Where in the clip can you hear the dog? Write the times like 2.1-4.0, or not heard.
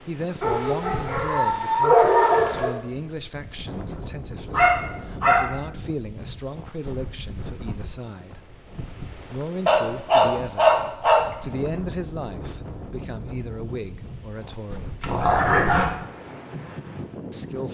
0.4-2.8, 4.5-5.5, 9.7-11.2, 15.0-15.9.